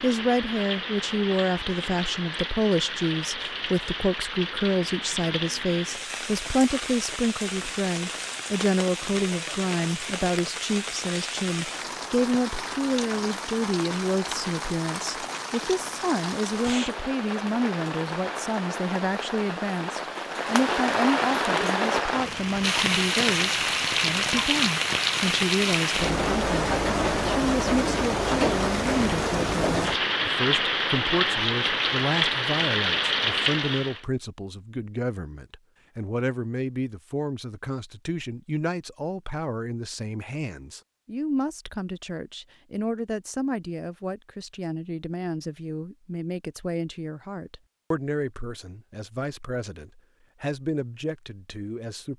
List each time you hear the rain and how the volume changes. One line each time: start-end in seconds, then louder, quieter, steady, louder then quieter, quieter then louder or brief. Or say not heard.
0.0-34.0 louder.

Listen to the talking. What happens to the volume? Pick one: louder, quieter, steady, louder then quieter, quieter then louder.
quieter.